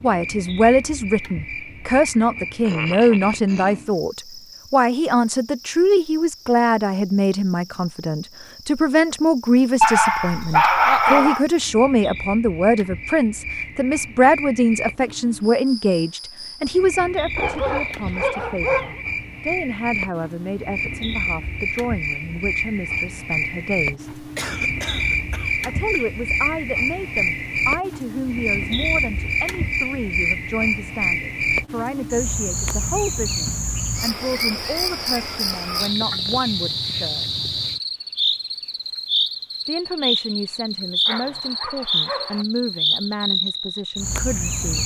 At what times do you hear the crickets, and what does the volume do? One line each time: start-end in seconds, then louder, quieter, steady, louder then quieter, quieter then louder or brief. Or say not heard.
0.0-44.8 louder.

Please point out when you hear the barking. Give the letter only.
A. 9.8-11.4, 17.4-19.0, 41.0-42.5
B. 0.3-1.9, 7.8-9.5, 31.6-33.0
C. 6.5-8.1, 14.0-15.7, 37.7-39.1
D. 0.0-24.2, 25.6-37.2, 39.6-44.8
A.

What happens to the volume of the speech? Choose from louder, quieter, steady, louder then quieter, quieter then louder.
quieter.